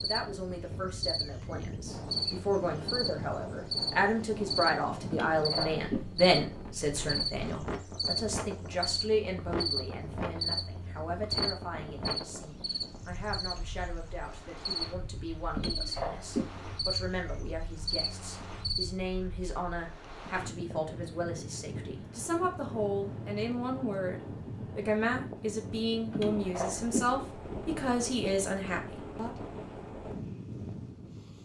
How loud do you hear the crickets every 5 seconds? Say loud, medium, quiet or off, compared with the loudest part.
loud, loud, loud, loud, off, off, off.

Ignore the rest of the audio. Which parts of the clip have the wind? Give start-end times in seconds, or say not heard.
0.0-31.4.